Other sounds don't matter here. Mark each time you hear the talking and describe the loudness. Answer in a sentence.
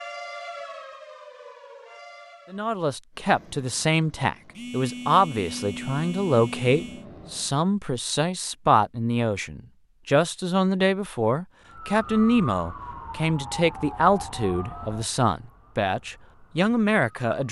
You can hear the talking from 2.5 to 17.4 s, at a steady volume.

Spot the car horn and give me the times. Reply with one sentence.
You can't hear the car horn here.